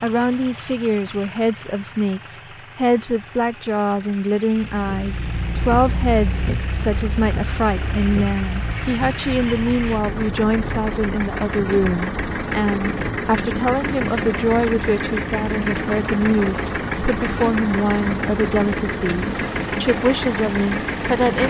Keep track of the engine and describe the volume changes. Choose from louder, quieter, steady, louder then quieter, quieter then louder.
louder.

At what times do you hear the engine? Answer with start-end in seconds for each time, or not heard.
0.0-21.4.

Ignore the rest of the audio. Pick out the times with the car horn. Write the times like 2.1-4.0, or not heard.
not heard.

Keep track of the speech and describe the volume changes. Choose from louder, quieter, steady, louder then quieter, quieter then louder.
steady.